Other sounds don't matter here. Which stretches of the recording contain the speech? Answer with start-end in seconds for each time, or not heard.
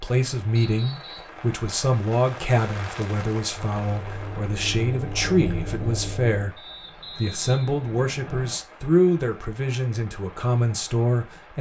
0.0-11.5.